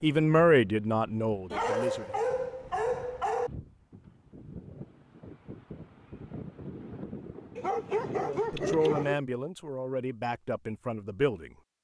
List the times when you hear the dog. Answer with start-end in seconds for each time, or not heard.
1.5-3.5, 7.5-9.2.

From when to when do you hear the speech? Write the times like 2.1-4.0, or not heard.
0.0-2.2, 8.1-11.5.